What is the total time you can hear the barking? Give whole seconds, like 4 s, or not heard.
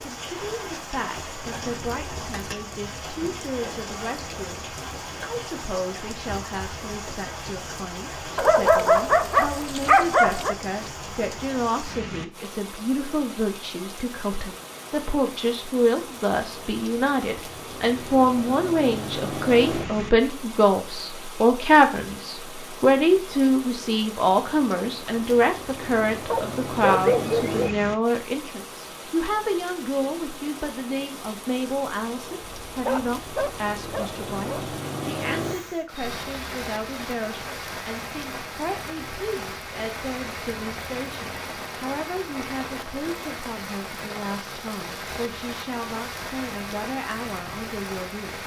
6 s.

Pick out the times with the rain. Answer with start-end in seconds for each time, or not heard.
0.0-48.4.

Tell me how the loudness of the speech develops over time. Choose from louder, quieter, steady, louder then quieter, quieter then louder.
louder then quieter.